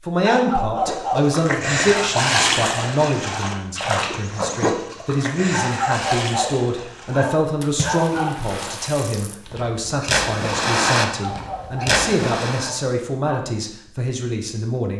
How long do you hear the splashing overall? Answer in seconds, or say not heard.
12 s.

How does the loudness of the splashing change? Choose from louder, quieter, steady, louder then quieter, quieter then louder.
quieter then louder.